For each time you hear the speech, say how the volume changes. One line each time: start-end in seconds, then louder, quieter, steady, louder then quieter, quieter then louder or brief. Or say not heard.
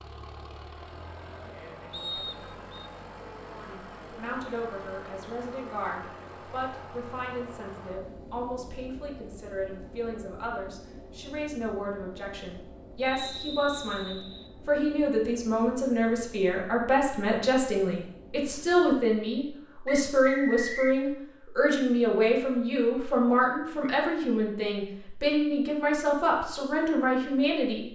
3.5-27.9 louder.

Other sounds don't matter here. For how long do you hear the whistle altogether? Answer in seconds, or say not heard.
4 s.